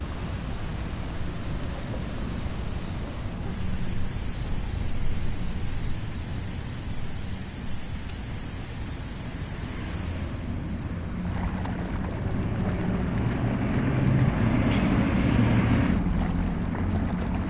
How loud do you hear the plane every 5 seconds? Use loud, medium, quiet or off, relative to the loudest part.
quiet, quiet, loud, loud.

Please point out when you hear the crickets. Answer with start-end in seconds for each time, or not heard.
0.0-17.4.